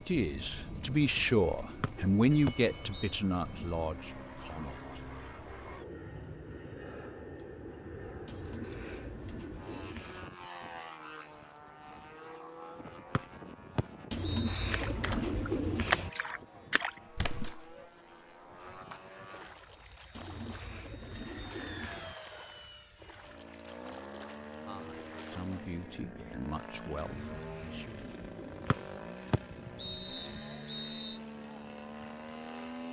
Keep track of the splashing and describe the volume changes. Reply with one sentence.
The loudness of the splashing goes down.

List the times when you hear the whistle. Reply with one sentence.
The whistle can be heard from 1.8 to 3.1 s, from 13.2 to 14.7 s and from 28.7 to 31.2 s.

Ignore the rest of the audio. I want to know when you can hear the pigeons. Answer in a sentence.
The pigeons can be heard from 0.6 to 2.0 s, from 8.2 to 10.3 s, from 14.1 to 16.1 s, from 20.1 to 22.1 s and from 26.9 to 29.0 s.